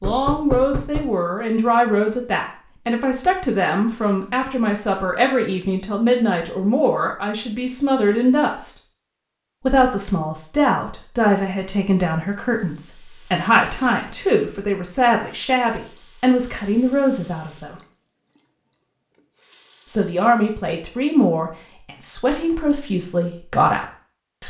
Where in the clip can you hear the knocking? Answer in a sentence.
You can hear the knocking from 0.0 to 1.1 s.